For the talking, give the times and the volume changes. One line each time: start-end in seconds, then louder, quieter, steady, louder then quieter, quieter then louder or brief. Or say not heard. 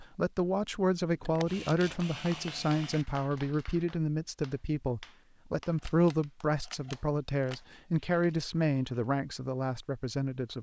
0.0-10.5 steady.